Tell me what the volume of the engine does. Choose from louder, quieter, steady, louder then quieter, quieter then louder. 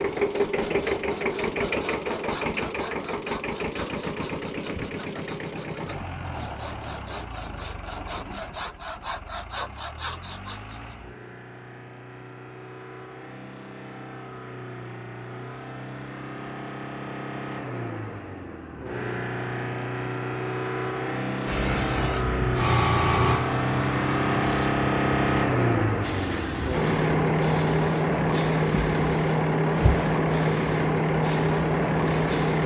quieter then louder.